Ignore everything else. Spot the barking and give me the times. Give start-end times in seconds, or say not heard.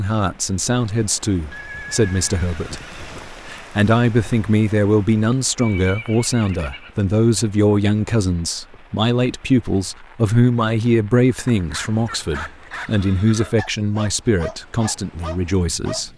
11.3-16.1.